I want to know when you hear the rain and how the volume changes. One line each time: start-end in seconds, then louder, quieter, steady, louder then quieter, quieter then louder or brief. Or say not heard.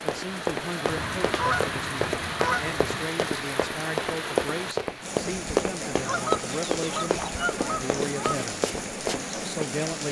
0.0-10.0 steady.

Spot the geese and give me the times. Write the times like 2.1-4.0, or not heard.
0.8-3.1, 6.0-8.4.